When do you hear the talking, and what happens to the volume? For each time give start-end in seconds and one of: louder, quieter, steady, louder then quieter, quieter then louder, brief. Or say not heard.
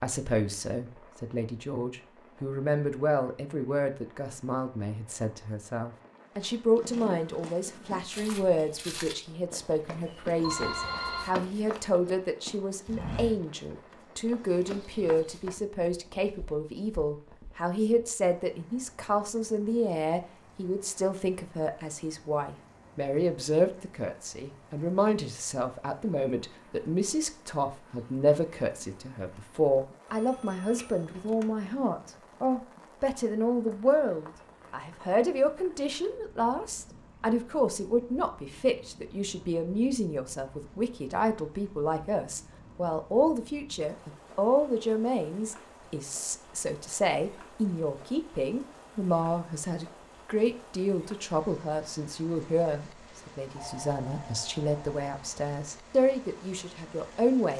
0.0-57.5 steady.